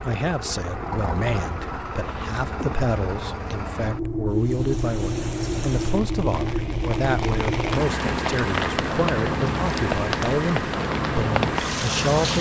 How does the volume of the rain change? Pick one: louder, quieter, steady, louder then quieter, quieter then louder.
louder.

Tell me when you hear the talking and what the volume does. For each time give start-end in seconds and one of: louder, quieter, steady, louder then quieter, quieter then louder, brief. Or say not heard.
0.0-12.3 steady.